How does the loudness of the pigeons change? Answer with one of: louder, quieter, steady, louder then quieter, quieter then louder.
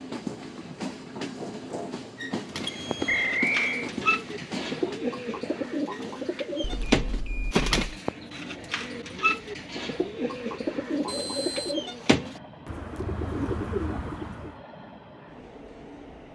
steady.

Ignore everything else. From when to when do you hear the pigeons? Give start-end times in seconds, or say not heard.
2.5-14.6.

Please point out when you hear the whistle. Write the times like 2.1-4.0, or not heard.
3.0-3.9.